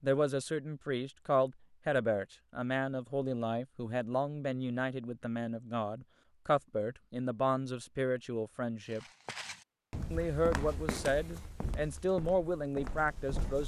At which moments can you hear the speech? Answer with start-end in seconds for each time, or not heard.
0.0-9.1, 10.1-13.6.